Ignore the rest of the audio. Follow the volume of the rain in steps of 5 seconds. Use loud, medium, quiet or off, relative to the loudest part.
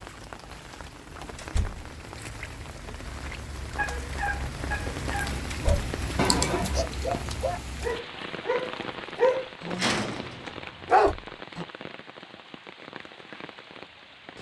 loud, loud, medium.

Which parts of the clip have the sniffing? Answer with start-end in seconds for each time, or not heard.
6.2-6.8.